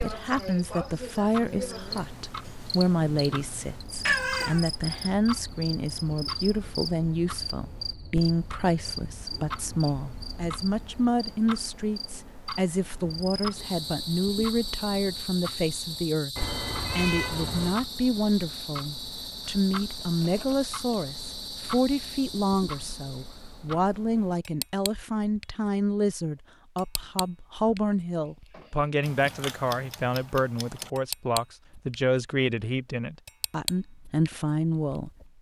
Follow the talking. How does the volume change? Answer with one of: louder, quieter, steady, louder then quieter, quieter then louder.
steady.